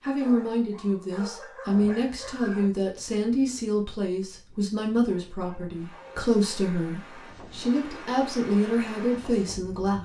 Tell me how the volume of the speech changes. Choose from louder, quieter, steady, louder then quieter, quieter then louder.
steady.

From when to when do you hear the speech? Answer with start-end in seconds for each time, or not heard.
0.0-9.9.